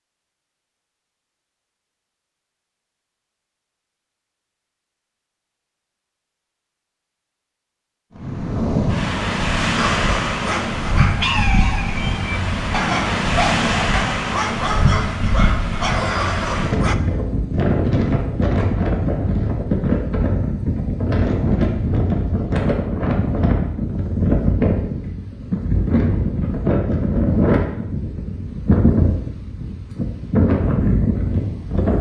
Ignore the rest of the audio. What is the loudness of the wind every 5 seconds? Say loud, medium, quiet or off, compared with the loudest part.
off, loud, loud, loud, loud, loud, loud.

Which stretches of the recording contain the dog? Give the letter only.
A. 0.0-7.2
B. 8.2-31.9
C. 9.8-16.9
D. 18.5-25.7
C.